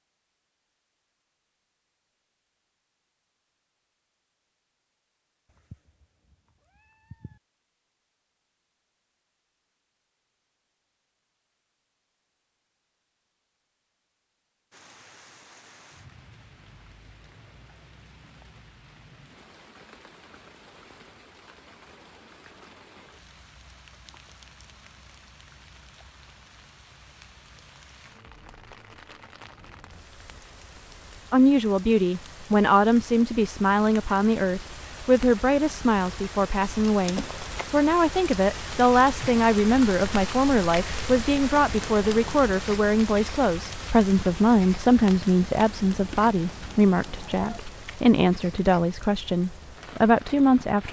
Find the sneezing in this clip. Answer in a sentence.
The sneezing can't be heard in this clip.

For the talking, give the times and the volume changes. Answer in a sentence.
The talking can be heard from 31.3 to 50.8 s, at a steady volume.